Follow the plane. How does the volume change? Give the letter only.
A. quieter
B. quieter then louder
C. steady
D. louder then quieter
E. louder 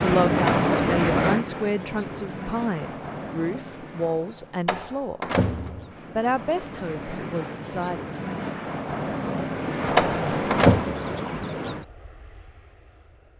B.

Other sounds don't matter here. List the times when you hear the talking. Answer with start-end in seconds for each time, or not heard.
0.0-5.2, 6.2-8.1.